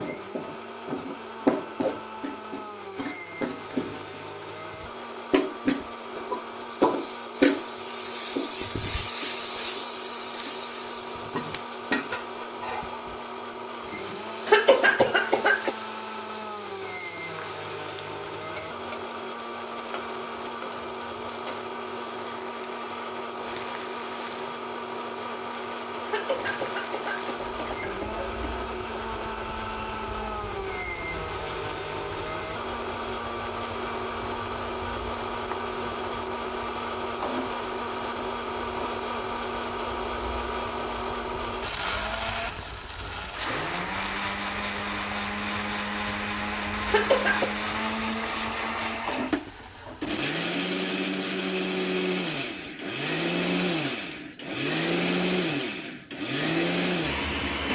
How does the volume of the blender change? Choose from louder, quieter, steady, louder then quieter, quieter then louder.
louder.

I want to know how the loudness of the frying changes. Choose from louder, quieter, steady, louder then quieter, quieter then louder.
quieter.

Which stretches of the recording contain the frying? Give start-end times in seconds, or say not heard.
0.0-50.2.